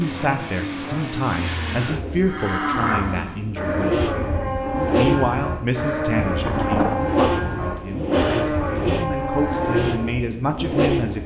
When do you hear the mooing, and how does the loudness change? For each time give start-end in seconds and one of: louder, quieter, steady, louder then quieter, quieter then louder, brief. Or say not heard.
2.2-10.1 steady.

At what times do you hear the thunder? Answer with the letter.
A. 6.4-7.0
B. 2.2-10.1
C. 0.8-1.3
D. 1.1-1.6
A.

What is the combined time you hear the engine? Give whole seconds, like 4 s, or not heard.
11 s.